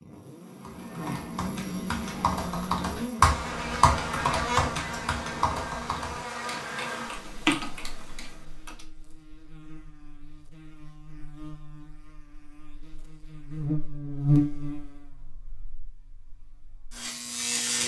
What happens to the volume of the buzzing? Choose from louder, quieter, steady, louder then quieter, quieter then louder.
quieter then louder.